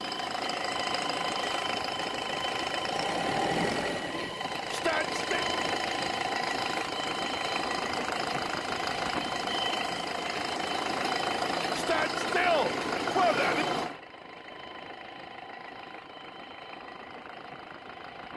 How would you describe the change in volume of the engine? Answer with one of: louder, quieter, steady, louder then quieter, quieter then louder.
quieter.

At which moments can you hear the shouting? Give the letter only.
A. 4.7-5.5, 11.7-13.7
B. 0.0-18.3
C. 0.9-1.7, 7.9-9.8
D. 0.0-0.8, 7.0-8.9
A.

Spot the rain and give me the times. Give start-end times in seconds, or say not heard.
not heard.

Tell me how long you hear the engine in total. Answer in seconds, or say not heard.
18 s.